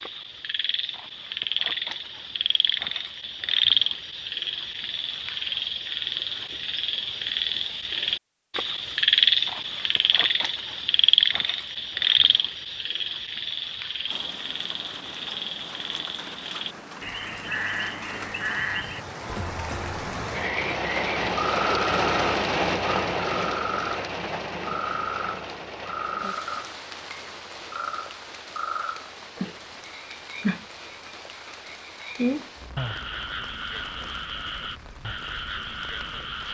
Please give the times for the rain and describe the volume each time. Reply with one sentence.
The rain can be heard from 14.1 to 36.4 s, getting louder then quieter.